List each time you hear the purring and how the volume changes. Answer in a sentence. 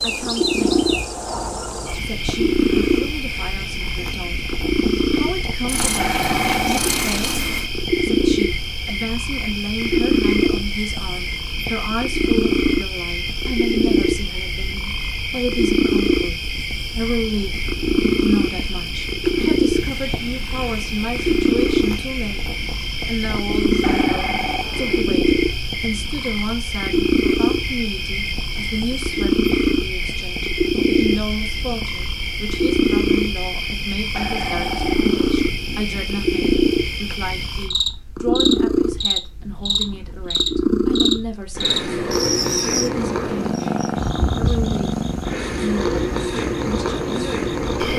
You can hear the purring from 0.0 to 47.9 s, at a steady volume.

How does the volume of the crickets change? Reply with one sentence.
The volume of the crickets stays about the same.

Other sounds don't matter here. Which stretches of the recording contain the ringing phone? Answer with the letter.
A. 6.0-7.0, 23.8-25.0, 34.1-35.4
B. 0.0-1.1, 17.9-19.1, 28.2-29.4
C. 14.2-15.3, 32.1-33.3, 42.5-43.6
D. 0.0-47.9
A.